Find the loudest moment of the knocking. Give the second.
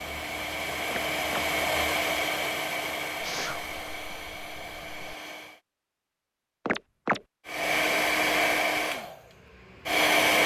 7 s.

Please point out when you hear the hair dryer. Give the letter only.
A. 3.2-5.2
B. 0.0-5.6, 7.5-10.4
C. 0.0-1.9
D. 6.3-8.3
B.